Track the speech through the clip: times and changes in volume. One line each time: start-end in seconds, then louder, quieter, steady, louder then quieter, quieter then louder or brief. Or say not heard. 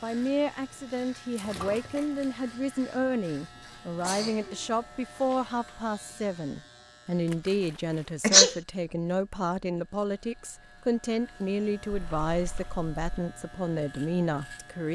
0.0-14.9 steady.